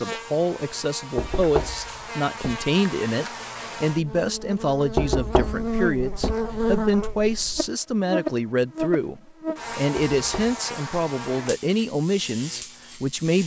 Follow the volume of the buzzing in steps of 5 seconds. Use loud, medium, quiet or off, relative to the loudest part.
medium, loud, medium.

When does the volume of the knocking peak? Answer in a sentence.
The loudest moment of the knocking is at 5 seconds.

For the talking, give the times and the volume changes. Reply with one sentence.
The talking can be heard from 0.0 to 13.4 s, at a steady volume.